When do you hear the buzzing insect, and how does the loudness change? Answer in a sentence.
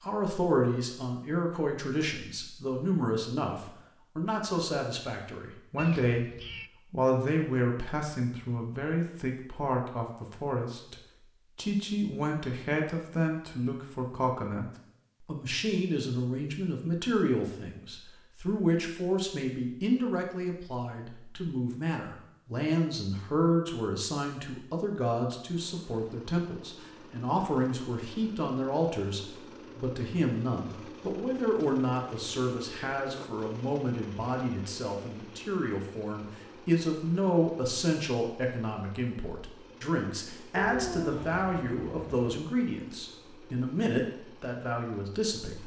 The buzzing insect can't be heard in this clip.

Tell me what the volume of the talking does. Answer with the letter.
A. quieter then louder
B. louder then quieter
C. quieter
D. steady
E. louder
D.